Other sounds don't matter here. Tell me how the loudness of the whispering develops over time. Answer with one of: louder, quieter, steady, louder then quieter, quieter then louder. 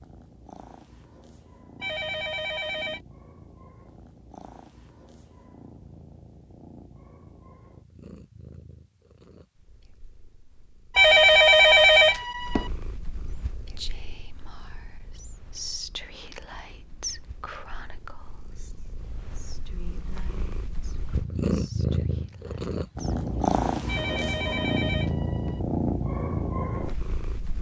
quieter.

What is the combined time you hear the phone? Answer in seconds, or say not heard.
5 s.